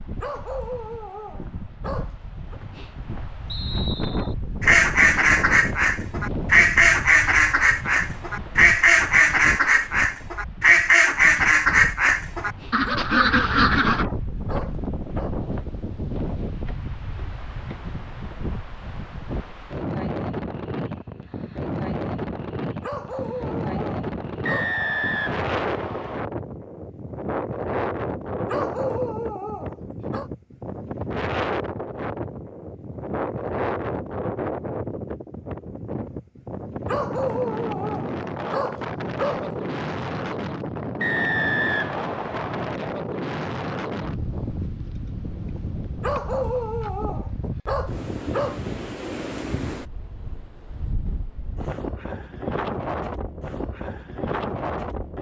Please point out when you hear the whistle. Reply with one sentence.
The whistle can be heard from 3.5 to 4.3 s, from 24.4 to 26.2 s and from 41.0 to 42.8 s.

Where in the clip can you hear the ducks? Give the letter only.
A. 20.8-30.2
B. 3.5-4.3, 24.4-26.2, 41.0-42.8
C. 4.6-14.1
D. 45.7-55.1
C.